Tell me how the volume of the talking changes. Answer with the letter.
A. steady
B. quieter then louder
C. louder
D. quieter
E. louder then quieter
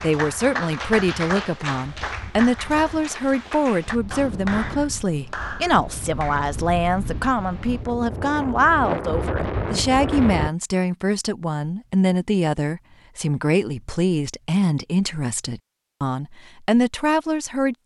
A.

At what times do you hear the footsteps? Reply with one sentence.
The footsteps can't be heard in this clip.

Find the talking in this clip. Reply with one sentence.
The talking can be heard from 0.0 to 17.8 s.